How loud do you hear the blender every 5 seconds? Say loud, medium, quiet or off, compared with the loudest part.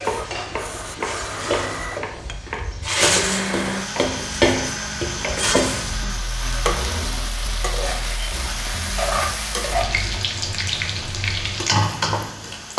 loud, loud, medium.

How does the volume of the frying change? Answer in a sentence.
The loudness of the frying goes up.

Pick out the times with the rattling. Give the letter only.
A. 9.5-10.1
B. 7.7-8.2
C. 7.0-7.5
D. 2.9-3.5
D.